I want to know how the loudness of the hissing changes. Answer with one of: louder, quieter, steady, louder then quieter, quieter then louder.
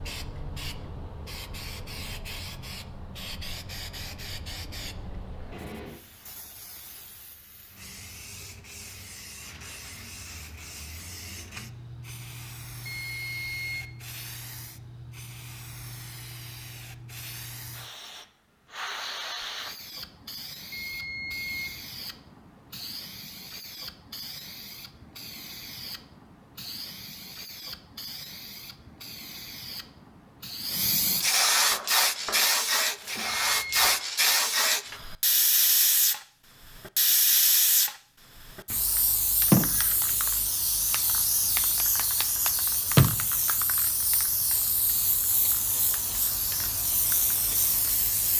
louder.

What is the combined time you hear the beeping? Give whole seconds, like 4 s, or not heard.
3 s.